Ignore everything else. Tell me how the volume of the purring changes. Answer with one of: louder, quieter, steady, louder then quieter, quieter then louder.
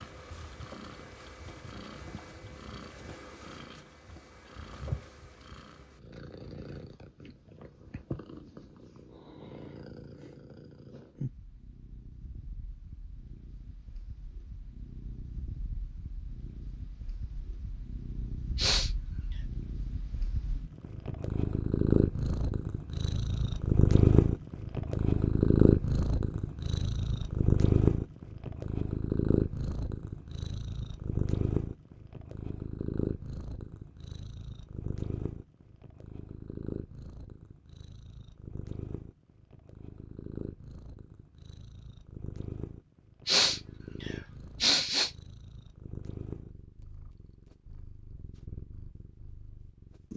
louder then quieter.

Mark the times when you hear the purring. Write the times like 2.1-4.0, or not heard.
0.0-50.1.